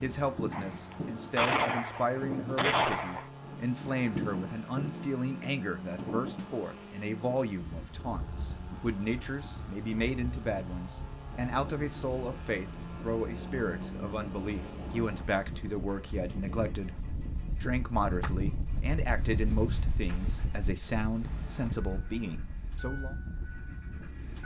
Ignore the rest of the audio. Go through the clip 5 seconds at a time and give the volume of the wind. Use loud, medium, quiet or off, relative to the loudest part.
loud, medium, medium, loud, medium.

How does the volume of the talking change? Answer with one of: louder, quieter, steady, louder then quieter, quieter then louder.
steady.